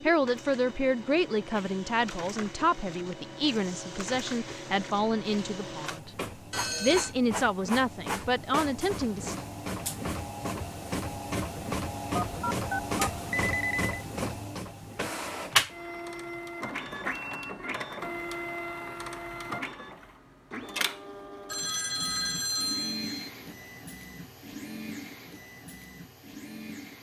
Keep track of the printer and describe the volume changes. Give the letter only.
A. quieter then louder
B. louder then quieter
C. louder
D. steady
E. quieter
B.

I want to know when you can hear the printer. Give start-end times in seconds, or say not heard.
0.0-26.9.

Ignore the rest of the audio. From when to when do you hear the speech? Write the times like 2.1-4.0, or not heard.
0.0-6.1, 6.8-9.4.